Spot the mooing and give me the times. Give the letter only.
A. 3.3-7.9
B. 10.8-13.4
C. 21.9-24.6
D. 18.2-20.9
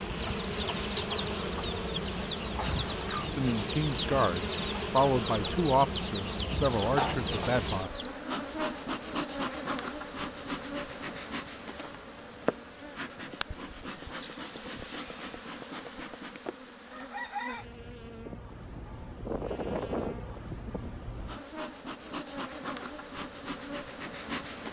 D.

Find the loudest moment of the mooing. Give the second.
20 s.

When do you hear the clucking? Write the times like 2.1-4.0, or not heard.
0.2-8.1.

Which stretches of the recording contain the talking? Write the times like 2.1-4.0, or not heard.
3.3-7.9.